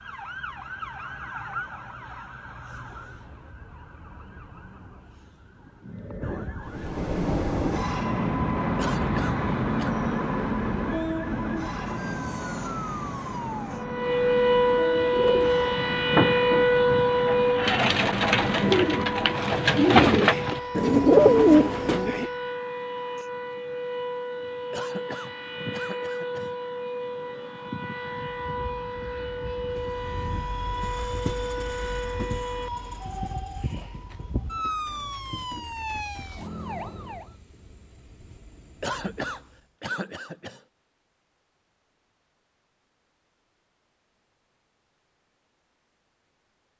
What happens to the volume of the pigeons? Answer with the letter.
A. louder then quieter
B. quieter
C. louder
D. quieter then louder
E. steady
C.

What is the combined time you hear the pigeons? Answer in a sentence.
The pigeons can be heard for 7 seconds in total.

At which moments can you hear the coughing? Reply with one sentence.
You can hear the coughing from 8.8 to 9.9 s, from 24.7 to 26.5 s and from 38.8 to 40.6 s.